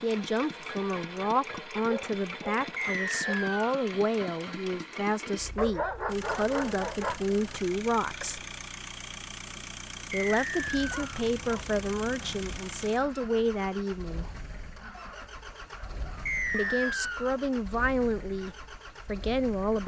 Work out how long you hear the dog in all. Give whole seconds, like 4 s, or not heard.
8 s.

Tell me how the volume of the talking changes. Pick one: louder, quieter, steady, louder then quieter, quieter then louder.
steady.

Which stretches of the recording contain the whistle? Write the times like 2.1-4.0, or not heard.
2.8-3.8, 10.1-11.0, 16.2-17.4.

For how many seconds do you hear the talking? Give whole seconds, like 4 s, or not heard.
16 s.